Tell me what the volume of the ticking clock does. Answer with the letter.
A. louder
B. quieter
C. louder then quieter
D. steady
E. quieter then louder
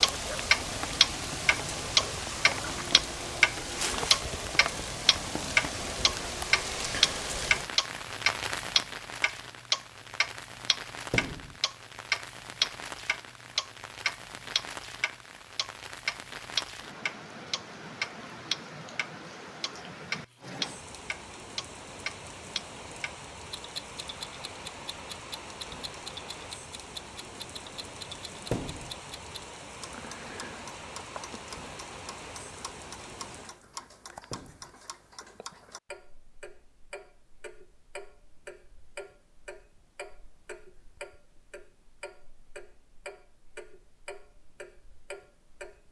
B.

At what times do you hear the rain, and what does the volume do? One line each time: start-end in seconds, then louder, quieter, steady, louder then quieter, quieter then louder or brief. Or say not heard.
0.0-33.6 quieter.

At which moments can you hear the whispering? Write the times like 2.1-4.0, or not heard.
not heard.